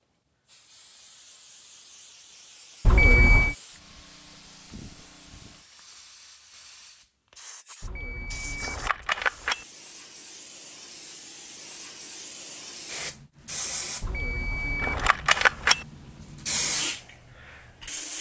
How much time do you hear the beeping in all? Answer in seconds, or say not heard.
4 s.